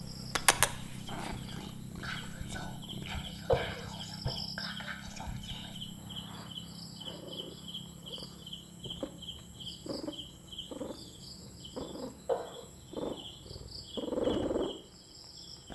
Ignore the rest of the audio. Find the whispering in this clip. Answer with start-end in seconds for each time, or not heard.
0.8-5.8.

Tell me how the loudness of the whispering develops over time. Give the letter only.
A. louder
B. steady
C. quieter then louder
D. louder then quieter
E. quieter
A.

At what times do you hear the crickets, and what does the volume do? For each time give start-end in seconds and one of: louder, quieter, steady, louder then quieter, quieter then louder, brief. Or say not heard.
0.0-15.7 quieter.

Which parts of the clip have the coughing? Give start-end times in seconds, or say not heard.
3.5-4.4, 12.2-13.2.